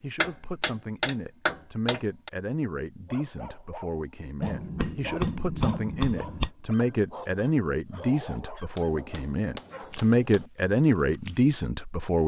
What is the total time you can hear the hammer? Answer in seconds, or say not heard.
6 s.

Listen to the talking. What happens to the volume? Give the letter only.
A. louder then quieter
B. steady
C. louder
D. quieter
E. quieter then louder
C.